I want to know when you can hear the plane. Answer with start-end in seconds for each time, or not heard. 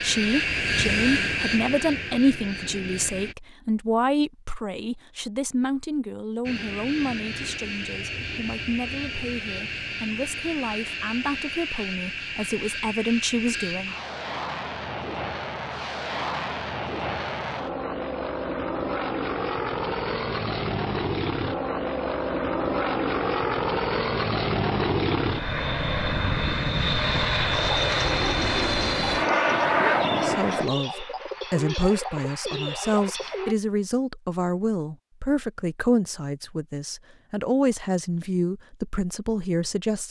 0.0-3.4, 6.5-30.6.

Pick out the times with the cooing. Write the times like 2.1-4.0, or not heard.
27.5-33.5.